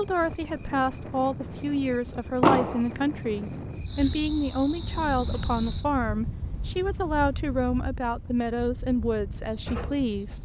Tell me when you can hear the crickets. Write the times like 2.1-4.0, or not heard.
0.0-10.3.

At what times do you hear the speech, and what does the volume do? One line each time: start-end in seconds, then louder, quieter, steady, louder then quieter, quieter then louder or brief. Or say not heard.
0.0-10.3 steady.